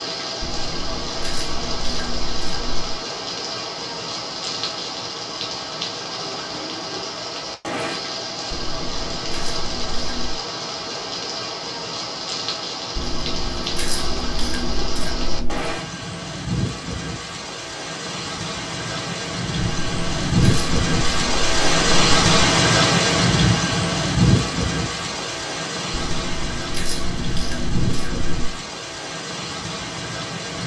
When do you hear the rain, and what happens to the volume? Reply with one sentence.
The rain can be heard from 0.0 to 30.6 s, getting louder then quieter.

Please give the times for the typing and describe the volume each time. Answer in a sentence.
You can't hear the typing here.